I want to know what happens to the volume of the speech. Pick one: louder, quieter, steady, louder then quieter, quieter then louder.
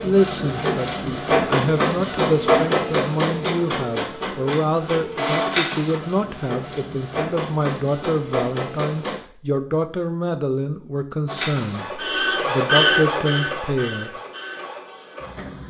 steady.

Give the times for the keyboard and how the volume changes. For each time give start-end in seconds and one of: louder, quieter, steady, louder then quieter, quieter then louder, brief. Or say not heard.
not heard.